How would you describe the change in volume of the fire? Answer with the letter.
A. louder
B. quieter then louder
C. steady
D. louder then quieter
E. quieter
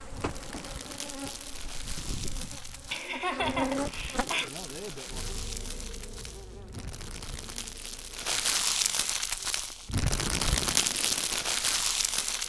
A.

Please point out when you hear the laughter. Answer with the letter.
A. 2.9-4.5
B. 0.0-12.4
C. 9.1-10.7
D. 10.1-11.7
A.